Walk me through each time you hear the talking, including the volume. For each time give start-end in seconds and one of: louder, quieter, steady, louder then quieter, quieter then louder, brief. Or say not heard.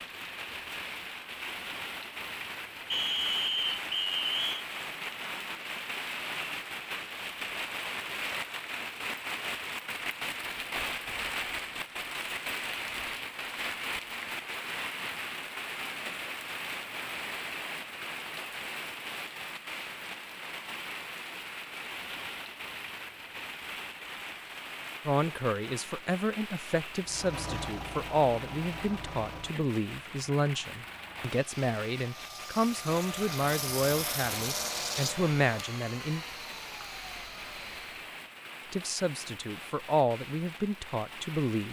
25.1-36.2 steady
38.7-41.6 brief.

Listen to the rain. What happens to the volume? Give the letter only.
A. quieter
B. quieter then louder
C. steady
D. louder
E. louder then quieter
A.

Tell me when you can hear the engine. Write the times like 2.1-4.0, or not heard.
27.0-38.1.